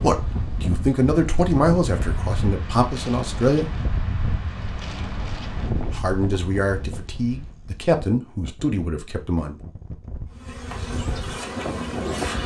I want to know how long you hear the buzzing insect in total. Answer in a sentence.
The buzzing insect can be heard for 2 seconds in total.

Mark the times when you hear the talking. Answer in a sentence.
You can hear the talking from 0.0 to 3.7 s and from 5.9 to 9.6 s.